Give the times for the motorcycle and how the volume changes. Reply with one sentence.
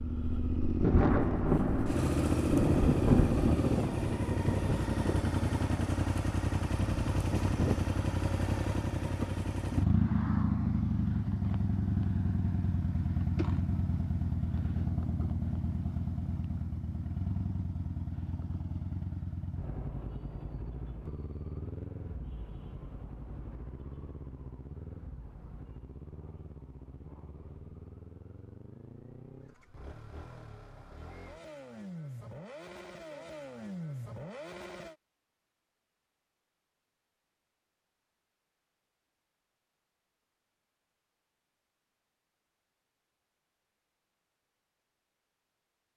You can hear the motorcycle from 0.0 to 35.0 s, getting quieter.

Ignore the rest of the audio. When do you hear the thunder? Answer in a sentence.
The thunder can be heard from 0.8 to 4.8 s.